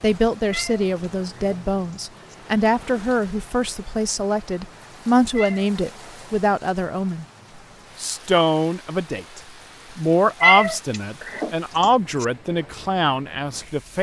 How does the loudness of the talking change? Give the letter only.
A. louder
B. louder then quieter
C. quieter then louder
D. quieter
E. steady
E.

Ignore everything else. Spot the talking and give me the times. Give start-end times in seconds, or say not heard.
0.0-7.2, 8.0-13.9.